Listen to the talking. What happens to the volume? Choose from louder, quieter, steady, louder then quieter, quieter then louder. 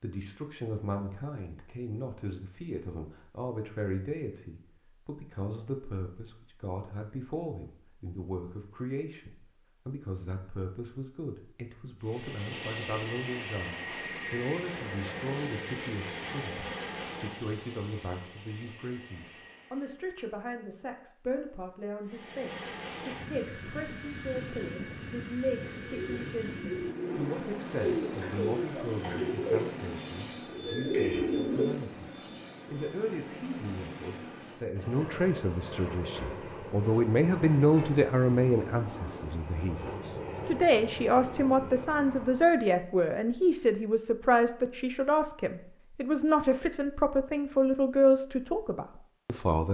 louder.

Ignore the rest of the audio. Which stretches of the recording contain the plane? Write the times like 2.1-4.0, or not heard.
12.0-19.9, 22.1-42.6.